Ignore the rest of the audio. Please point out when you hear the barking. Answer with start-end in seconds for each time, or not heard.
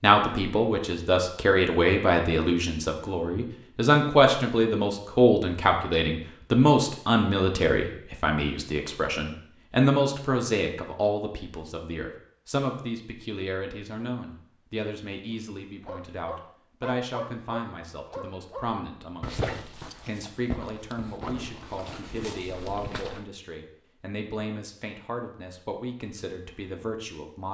15.3-23.2.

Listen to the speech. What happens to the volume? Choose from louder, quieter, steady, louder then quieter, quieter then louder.
quieter.